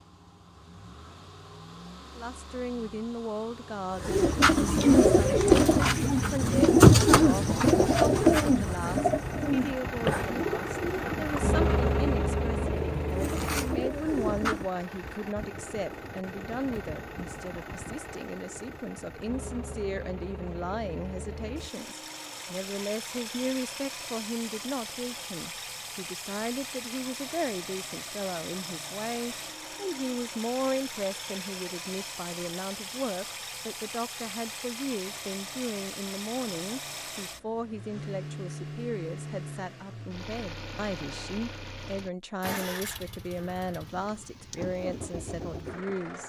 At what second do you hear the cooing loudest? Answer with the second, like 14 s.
7 s.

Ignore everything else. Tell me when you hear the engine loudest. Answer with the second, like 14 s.
12 s.